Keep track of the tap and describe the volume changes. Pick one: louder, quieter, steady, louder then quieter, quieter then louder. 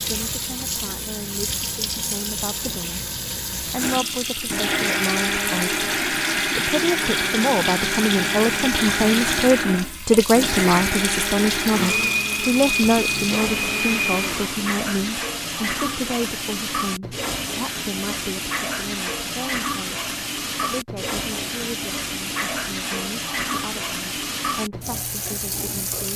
steady.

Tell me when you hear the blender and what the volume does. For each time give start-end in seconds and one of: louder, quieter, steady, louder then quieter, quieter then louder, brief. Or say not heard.
3.8-14.7 steady.